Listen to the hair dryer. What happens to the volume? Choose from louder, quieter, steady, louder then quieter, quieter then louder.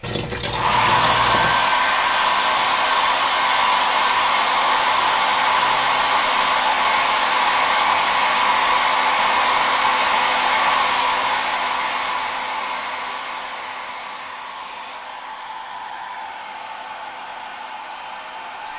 quieter.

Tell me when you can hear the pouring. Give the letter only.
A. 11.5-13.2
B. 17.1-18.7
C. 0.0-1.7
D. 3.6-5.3
C.